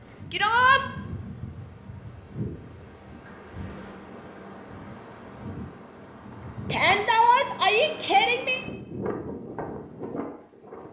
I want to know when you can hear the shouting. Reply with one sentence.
The shouting can be heard from 0.3 to 0.8 s and from 6.7 to 8.6 s.